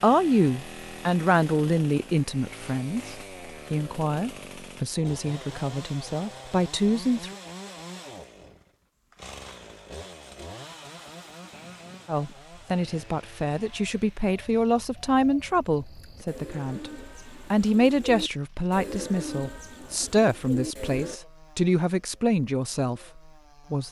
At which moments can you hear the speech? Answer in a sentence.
The speech can be heard from 0.0 to 7.3 s, from 12.1 to 16.9 s and from 17.5 to 23.8 s.